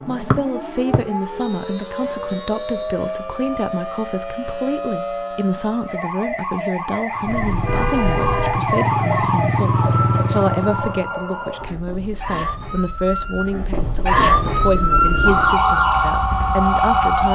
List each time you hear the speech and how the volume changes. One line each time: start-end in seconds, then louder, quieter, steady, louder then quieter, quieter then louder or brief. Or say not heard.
0.1-17.2 steady.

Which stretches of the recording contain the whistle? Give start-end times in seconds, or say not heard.
0.3-2.9.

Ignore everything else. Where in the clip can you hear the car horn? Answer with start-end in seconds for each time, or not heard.
7.3-8.6.